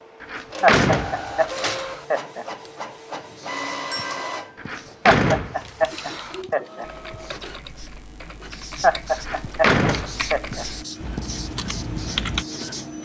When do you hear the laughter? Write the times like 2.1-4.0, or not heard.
0.6-2.5, 5.1-6.8, 8.8-10.7.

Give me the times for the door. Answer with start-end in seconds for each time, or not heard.
0.2-2.0, 4.5-6.4, 9.2-10.3.